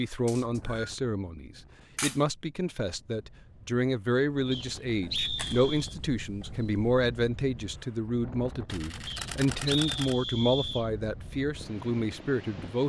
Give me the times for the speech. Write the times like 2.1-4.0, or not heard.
0.0-12.8.